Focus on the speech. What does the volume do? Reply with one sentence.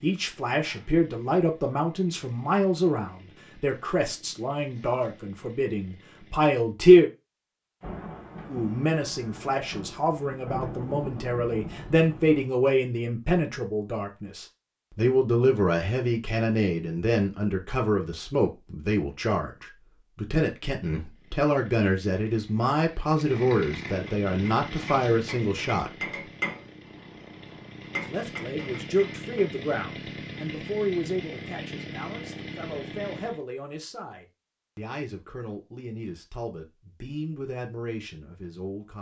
The loudness of the speech goes down.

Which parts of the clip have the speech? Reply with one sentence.
The speech can be heard from 0.0 to 7.1 s, from 8.4 to 25.9 s and from 28.0 to 38.9 s.